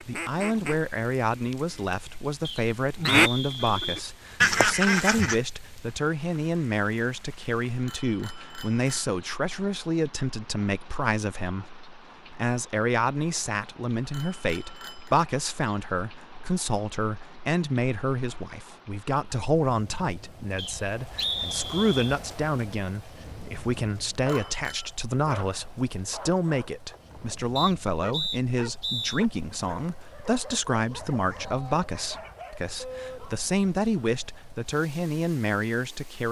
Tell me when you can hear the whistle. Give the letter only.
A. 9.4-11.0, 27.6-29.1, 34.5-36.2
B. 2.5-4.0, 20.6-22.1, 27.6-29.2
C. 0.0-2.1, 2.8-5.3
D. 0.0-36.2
B.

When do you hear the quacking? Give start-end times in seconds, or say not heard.
0.0-2.1, 2.8-5.3.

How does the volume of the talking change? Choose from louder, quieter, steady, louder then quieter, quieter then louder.
steady.